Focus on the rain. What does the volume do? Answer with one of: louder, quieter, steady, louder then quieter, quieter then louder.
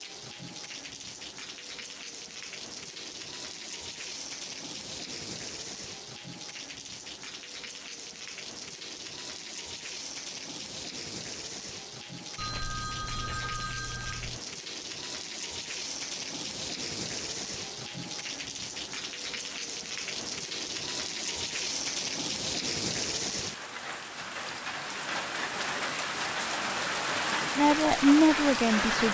louder.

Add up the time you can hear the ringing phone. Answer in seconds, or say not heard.
2 s.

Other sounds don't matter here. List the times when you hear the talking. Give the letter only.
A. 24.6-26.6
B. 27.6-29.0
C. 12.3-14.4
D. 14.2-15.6
B.